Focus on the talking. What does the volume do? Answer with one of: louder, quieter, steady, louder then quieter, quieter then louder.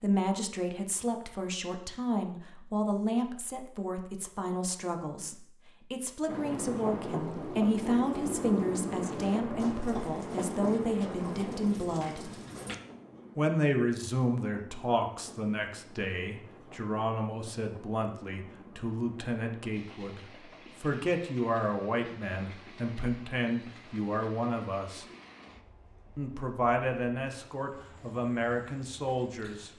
steady.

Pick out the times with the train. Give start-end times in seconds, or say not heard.
6.2-29.7.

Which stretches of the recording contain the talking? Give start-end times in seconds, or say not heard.
0.0-12.3, 13.3-25.1, 26.1-29.7.